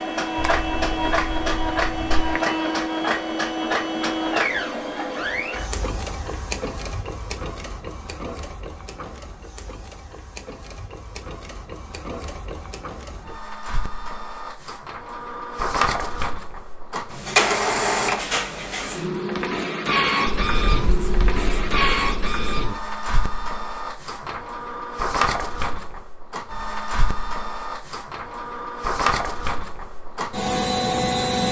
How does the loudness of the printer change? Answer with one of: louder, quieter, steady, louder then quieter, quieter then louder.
quieter then louder.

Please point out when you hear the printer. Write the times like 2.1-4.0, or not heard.
0.0-31.4.